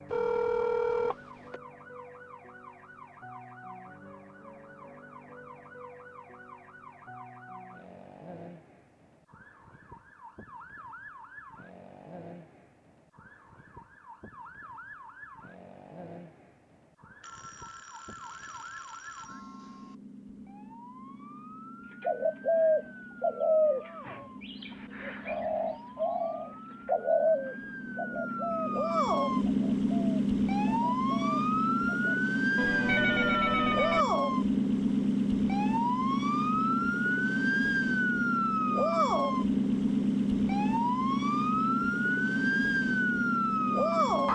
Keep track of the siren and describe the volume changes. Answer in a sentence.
The loudness of the siren goes up.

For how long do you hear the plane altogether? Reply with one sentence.
The plane can't be heard in this clip.